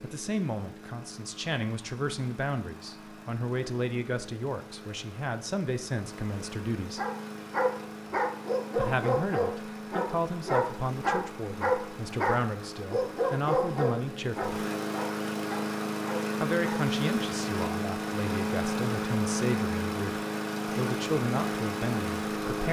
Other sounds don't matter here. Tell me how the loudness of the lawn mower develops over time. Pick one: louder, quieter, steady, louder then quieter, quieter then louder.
louder.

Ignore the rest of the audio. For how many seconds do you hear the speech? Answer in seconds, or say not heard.
19 s.